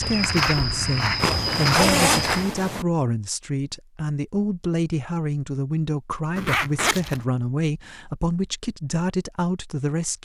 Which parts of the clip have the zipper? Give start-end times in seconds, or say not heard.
1.2-2.9, 6.3-7.2.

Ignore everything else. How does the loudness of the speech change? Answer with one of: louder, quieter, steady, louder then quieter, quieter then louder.
steady.